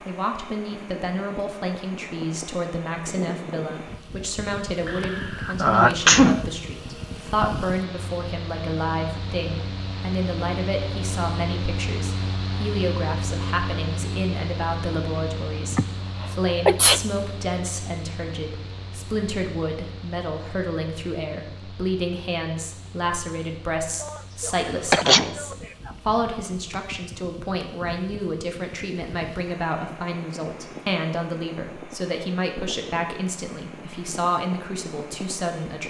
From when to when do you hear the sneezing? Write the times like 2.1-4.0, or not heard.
4.8-6.4, 15.7-17.0, 24.0-25.6.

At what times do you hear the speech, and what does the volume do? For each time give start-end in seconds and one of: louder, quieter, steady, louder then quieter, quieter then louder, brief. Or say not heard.
0.1-35.8 steady.